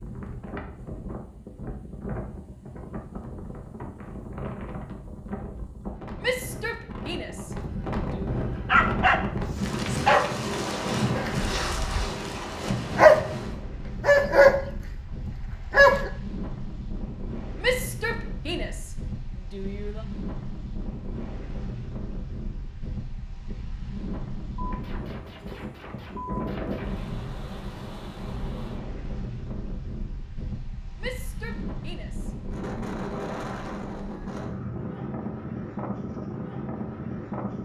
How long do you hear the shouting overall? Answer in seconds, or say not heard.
6 s.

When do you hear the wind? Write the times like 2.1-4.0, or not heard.
0.0-37.5.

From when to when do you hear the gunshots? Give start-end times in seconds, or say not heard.
24.6-27.1.